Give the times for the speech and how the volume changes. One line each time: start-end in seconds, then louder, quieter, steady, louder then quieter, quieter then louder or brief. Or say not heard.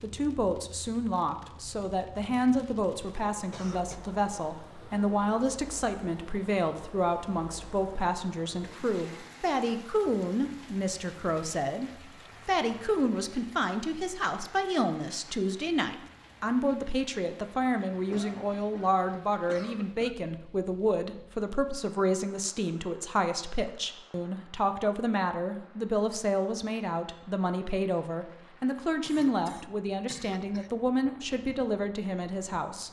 0.0-32.8 steady.